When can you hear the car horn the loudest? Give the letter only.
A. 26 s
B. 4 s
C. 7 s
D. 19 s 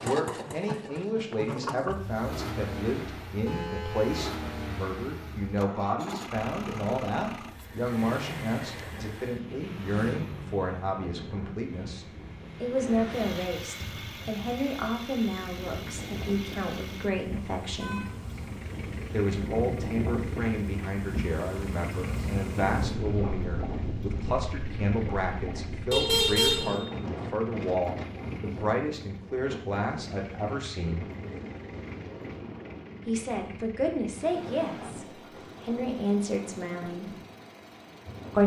A.